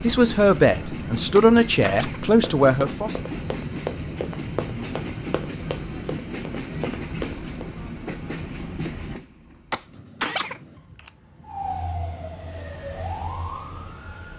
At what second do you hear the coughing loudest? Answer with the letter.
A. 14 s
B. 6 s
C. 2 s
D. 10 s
D.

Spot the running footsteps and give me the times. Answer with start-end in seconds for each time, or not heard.
2.3-7.7.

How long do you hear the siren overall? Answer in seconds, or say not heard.
3 s.